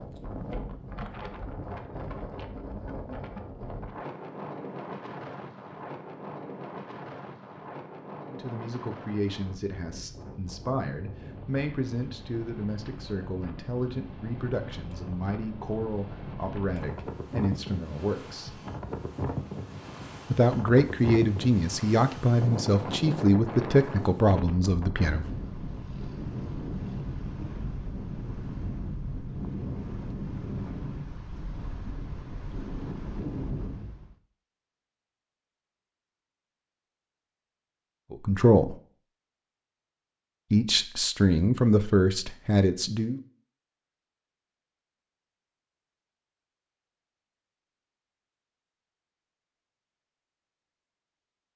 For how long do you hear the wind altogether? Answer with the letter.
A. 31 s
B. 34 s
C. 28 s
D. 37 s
B.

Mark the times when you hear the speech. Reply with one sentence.
You can hear the speech from 8.3 to 18.6 s, from 20.3 to 25.2 s, from 38.1 to 38.8 s and from 40.5 to 43.2 s.